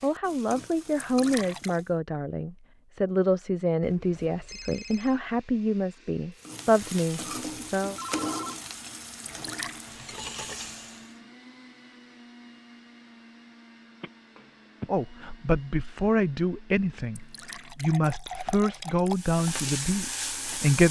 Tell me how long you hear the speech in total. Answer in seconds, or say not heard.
14 s.